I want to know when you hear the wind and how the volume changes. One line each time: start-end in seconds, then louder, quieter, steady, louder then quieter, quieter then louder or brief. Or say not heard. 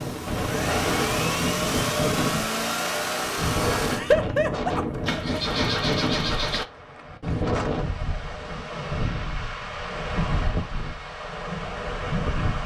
0.0-12.6 steady.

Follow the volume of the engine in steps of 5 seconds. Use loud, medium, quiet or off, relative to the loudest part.
loud, loud, off.